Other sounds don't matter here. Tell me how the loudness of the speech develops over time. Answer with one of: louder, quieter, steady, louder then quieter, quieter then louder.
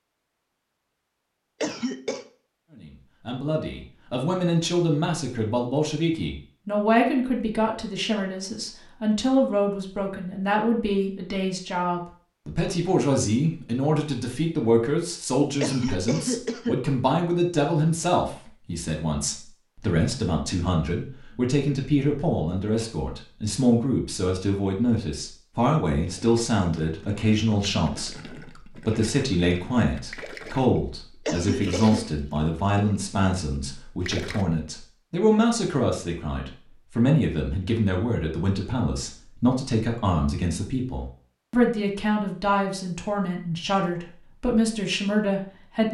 steady.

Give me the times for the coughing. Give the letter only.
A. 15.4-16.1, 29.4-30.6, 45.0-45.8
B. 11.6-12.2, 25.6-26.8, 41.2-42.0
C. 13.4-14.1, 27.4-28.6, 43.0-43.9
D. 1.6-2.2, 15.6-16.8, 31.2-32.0
D.